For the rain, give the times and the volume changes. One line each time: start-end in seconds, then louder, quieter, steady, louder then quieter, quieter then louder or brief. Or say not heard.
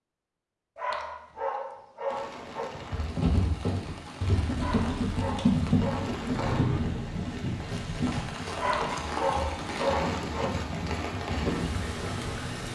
2.0-12.7 louder.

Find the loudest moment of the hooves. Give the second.
6 s.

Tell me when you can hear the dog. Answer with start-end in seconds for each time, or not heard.
0.8-2.7, 4.5-6.8, 8.6-10.6.